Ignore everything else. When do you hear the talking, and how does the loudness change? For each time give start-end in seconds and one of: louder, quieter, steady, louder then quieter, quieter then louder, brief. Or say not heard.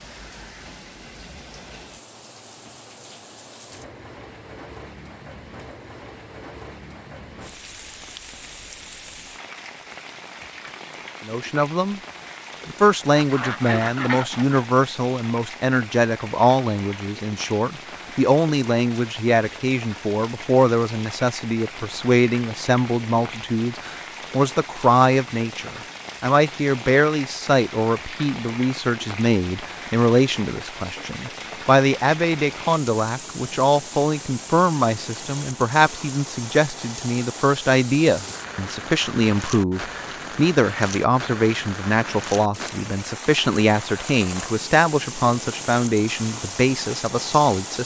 11.2-12.0 brief
12.7-47.8 steady.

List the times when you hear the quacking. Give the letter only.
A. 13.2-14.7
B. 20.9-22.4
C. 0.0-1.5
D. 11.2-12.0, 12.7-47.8
A.